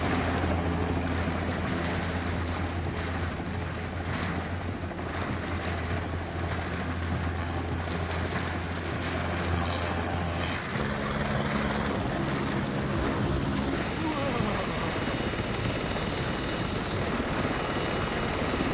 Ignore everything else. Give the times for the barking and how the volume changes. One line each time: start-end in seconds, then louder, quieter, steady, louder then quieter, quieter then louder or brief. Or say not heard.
not heard.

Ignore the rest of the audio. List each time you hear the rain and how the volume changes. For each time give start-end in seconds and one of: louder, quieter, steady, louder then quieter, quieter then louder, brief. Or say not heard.
0.0-18.6 steady.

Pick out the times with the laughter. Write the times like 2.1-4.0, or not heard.
13.9-15.1.